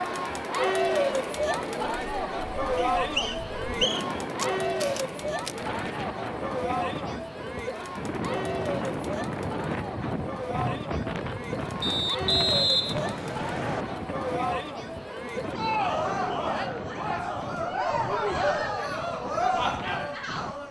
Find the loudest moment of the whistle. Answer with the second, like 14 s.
13 s.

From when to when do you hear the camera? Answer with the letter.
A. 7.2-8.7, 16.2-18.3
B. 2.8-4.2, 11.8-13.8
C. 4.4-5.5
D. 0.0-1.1
C.